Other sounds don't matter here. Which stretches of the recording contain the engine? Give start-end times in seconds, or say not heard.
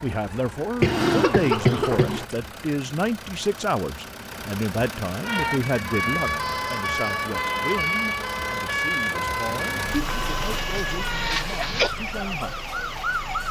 0.0-13.4.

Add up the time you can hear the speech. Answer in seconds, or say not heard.
13 s.